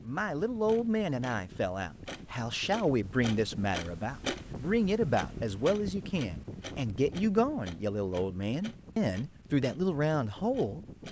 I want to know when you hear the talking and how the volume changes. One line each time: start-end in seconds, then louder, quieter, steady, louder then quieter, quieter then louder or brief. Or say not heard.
0.0-10.8 steady.